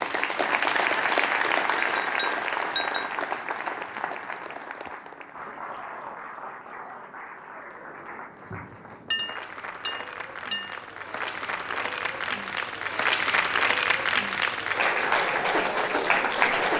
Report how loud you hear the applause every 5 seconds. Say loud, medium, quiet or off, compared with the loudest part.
loud, quiet, loud, loud.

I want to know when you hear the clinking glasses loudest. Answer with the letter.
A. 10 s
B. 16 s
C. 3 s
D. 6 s
C.